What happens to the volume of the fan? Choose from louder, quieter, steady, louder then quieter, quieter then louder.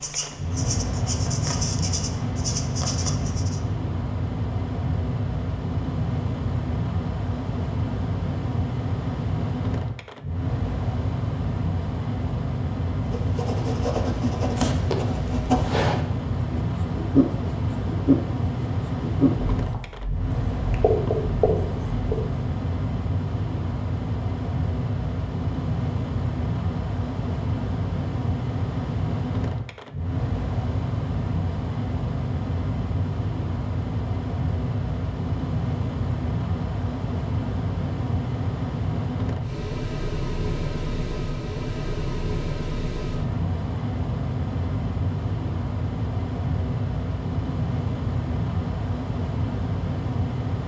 steady.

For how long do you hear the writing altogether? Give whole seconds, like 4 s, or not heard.
13 s.